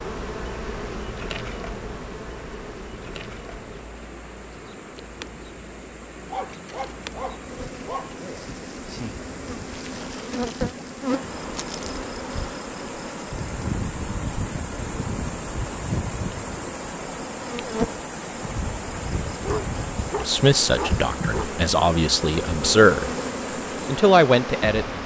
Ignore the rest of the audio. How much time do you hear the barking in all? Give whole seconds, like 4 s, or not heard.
4 s.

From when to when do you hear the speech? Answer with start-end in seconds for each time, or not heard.
20.2-23.1, 23.9-25.0.